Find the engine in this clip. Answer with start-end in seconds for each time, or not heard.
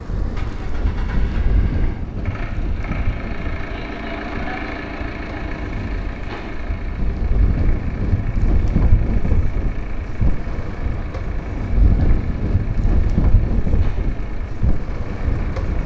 0.1-15.8.